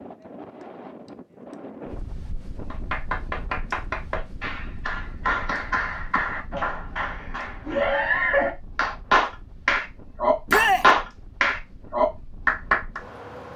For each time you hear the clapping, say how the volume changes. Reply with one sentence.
You can hear the clapping from 2.7 to 13.0 s, getting louder.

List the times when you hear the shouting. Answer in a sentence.
You can hear the shouting from 10.4 to 10.8 s.